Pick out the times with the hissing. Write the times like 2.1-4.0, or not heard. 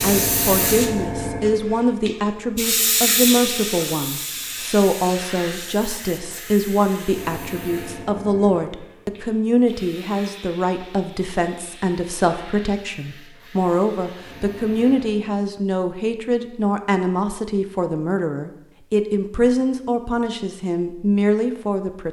0.0-15.3.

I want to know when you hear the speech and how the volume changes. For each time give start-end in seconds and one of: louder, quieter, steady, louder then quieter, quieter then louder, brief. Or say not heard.
0.0-22.0 steady.